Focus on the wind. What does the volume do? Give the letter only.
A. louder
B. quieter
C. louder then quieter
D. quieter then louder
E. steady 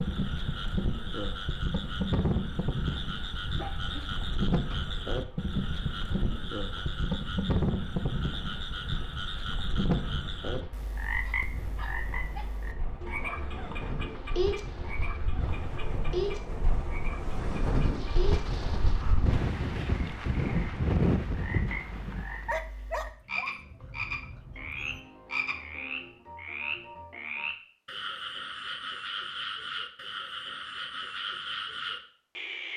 A.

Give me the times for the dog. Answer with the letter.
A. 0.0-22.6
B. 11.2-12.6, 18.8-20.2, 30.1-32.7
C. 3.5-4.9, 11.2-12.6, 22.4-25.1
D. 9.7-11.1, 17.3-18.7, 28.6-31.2
C.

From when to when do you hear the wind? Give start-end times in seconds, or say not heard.
0.0-22.6.